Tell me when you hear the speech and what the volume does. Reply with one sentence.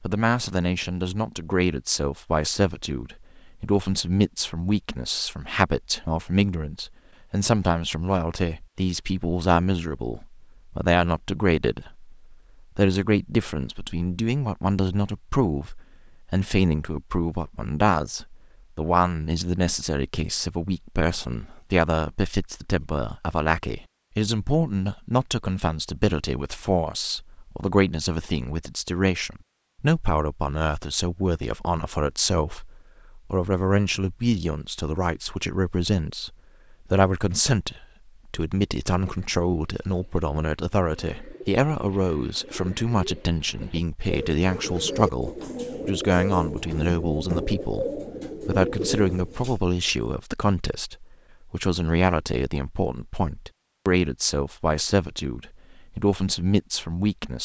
You can hear the speech from 0.0 to 57.4 s, at a steady volume.